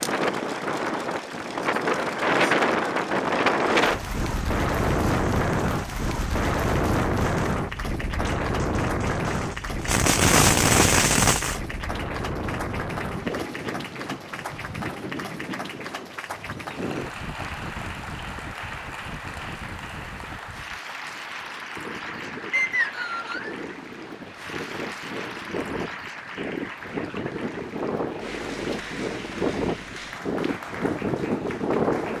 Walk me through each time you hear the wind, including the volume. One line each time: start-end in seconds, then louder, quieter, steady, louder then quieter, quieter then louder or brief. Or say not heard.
0.0-32.1 quieter then louder.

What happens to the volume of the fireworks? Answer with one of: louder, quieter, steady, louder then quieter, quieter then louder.
louder.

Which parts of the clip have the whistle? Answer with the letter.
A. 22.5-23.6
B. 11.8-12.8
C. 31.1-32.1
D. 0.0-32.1
A.